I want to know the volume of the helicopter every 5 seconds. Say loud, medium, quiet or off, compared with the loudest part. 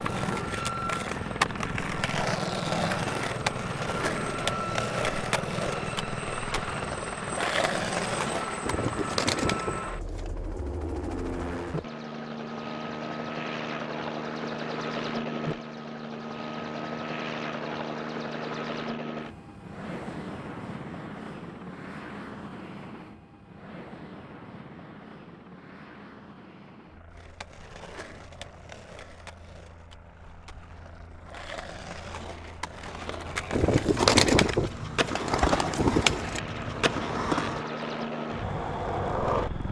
loud, loud, loud, loud, medium, quiet, quiet, loud.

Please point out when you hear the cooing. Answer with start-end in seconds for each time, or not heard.
8.6-10.3, 33.5-36.4.